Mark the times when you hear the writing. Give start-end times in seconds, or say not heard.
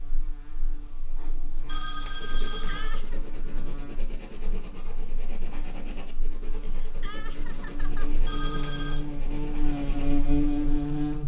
0.5-10.8.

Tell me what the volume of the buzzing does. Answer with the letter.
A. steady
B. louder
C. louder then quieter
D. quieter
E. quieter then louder
B.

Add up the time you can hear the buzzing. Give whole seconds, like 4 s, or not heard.
11 s.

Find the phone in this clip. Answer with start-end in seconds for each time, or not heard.
1.6-3.0, 8.2-9.1.